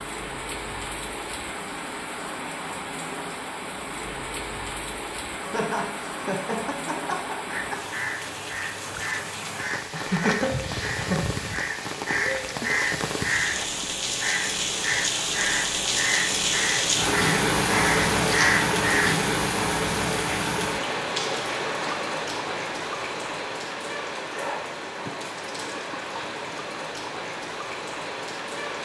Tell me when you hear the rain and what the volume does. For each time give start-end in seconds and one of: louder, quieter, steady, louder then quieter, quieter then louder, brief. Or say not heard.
0.0-28.7 louder then quieter.